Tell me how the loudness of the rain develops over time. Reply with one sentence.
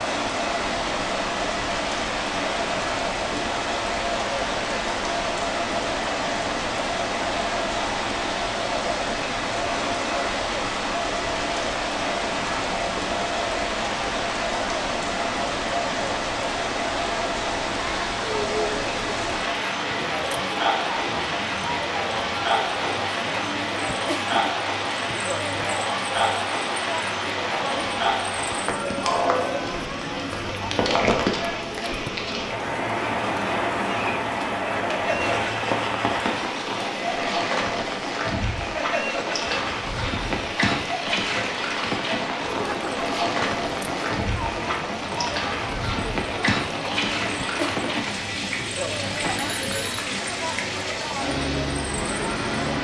The loudness of the rain stays about the same.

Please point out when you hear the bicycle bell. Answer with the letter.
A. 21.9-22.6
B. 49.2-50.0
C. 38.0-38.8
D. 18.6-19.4
B.